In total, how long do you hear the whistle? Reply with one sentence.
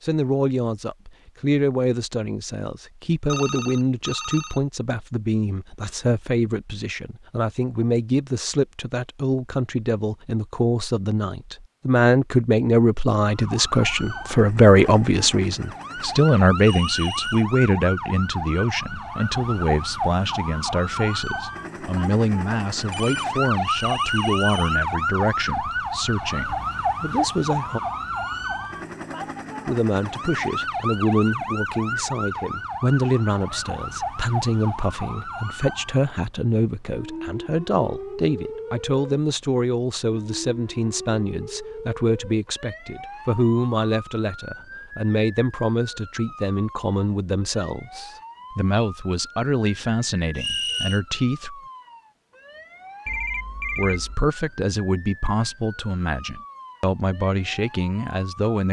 The whistle can be heard for 3 seconds in total.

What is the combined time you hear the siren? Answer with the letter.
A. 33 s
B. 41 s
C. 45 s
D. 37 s
C.